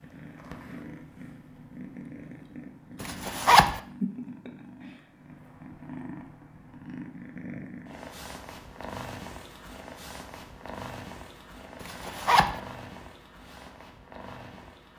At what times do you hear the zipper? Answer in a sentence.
You can hear the zipper from 3.0 to 3.8 s and from 11.8 to 12.6 s.